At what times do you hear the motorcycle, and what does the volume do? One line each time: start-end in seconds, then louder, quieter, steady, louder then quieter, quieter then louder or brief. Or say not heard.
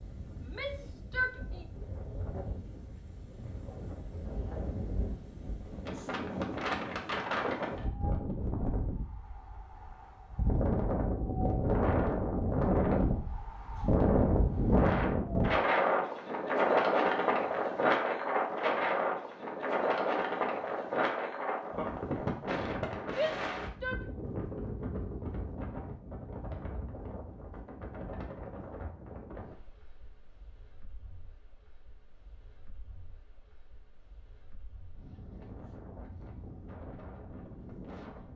not heard.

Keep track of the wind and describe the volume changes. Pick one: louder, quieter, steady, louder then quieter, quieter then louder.
louder then quieter.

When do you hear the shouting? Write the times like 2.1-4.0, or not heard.
0.4-1.6, 23.1-24.1.